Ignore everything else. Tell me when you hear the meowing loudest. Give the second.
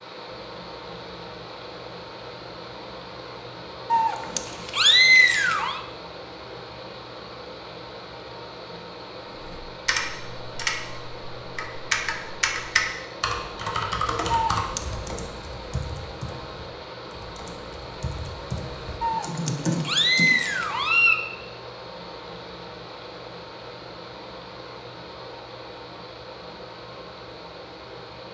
5 s.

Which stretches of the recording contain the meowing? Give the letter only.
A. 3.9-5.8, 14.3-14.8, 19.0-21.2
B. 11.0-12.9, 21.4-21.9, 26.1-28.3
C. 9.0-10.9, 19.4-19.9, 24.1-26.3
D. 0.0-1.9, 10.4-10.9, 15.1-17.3
A.